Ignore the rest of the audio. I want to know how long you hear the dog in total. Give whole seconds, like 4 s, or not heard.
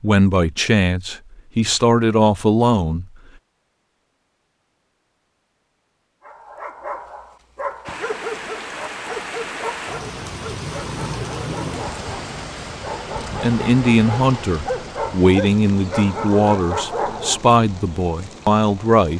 11 s.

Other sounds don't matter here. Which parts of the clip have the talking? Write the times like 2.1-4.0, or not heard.
0.0-3.0, 13.4-19.1.